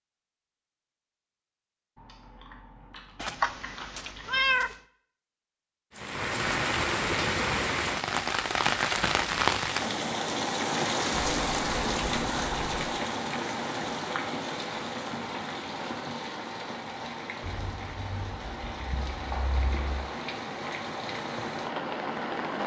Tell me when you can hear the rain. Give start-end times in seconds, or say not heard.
6.0-22.6.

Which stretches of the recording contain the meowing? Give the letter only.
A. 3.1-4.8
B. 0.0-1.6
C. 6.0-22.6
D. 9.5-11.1
A.